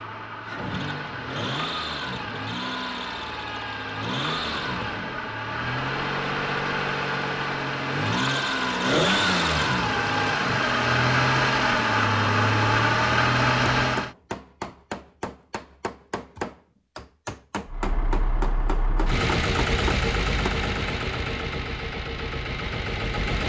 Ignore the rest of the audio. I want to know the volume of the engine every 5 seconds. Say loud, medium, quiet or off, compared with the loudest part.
medium, loud, loud, medium, medium.